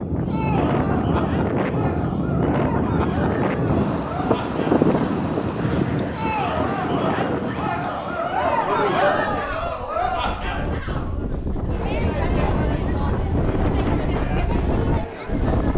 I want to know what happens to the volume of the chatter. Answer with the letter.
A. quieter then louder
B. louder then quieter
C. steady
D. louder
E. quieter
B.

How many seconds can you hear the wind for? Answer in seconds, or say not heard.
16 s.